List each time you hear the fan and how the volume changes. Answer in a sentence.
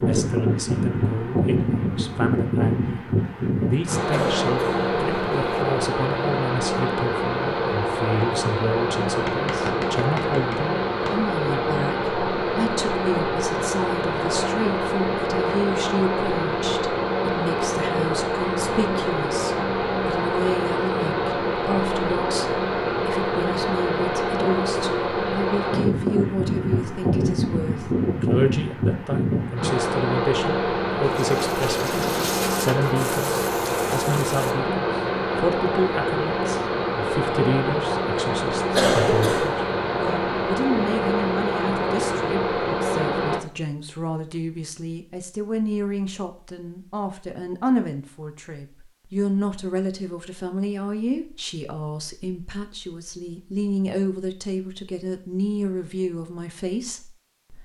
The fan can be heard from 0.0 to 43.4 s, at a steady volume.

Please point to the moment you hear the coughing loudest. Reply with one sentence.
The loudest moment of the coughing is at 39 seconds.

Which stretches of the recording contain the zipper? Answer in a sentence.
You can't hear the zipper here.